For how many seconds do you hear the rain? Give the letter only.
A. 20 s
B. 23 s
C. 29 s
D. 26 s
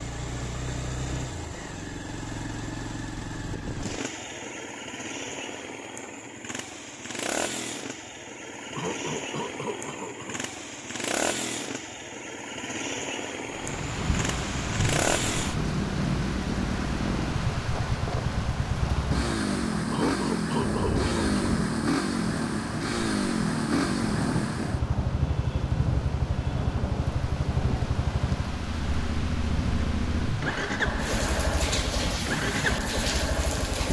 A.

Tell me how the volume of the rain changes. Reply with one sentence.
The loudness of the rain stays about the same.